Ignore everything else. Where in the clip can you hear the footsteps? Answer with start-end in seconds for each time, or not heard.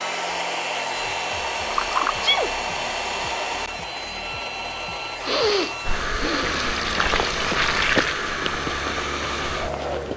6.5-10.1.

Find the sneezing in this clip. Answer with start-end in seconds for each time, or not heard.
2.0-2.5, 5.2-6.8.